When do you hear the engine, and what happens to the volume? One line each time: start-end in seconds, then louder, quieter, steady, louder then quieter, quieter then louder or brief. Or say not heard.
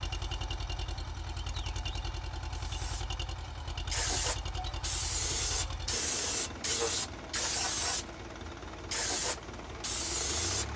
0.0-10.7 steady.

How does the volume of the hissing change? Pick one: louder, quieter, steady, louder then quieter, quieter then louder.
steady.